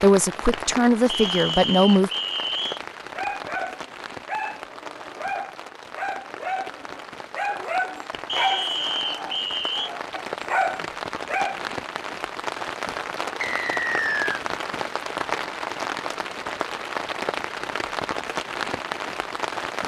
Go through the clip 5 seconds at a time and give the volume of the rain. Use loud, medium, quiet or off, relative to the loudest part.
medium, medium, loud, loud.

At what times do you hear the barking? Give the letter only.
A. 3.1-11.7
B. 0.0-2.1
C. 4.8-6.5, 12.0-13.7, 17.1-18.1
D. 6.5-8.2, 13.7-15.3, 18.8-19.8
A.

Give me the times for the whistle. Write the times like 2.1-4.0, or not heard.
1.1-2.8, 8.2-9.9, 13.4-14.4.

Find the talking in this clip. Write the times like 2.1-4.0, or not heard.
0.0-2.1.